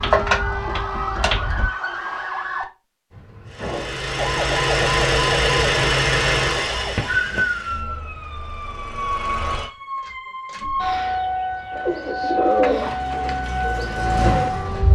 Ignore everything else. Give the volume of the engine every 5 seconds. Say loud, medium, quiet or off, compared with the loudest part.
loud, loud, medium.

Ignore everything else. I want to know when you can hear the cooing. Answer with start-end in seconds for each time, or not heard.
0.0-1.7, 11.7-14.8.